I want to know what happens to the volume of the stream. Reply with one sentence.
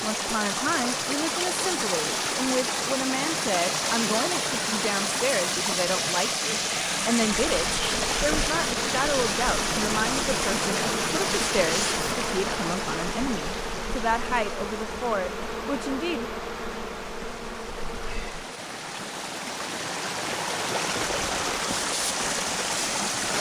The volume of the stream goes down, then up.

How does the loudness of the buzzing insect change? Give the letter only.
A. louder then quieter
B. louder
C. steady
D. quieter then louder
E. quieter
C.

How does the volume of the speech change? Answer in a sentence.
The volume of the speech stays about the same.